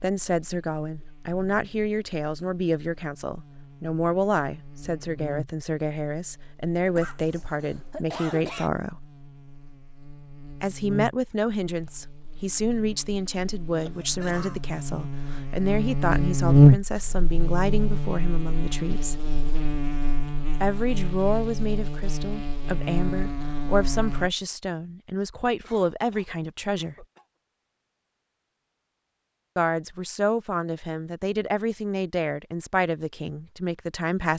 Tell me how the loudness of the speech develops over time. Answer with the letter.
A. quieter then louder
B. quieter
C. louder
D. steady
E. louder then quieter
D.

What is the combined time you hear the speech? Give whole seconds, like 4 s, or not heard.
29 s.